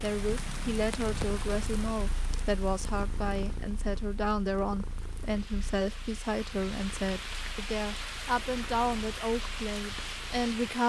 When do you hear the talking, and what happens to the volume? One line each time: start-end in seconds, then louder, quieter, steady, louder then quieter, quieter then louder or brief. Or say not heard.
0.0-10.8 steady.